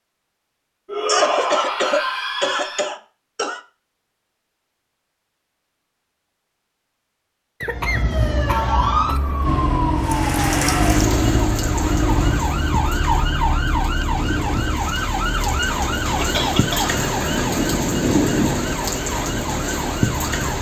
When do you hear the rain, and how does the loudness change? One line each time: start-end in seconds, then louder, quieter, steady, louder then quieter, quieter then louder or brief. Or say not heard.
9.9-20.5 quieter then louder.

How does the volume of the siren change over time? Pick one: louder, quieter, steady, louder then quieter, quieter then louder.
quieter.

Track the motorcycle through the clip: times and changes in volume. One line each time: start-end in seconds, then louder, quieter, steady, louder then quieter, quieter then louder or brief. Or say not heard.
9.4-14.8 quieter.